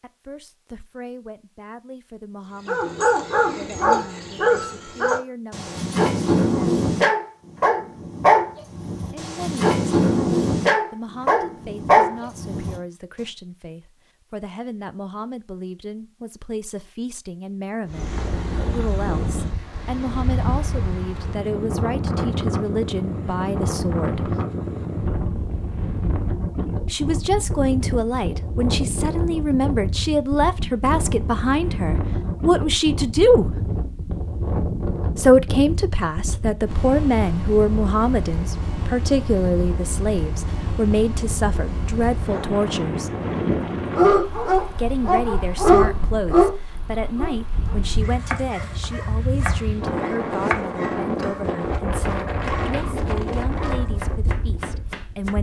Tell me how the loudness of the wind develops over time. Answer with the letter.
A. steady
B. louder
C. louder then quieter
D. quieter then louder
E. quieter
A.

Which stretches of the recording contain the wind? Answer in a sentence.
You can hear the wind from 17.9 to 55.3 s.